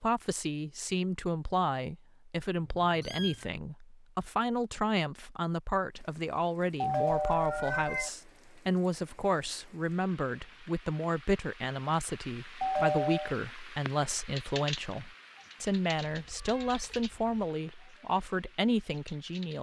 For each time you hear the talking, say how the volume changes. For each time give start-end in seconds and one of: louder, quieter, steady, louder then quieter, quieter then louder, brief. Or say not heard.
0.0-19.5 steady.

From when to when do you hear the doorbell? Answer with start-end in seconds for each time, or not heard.
6.8-8.1, 12.6-13.3.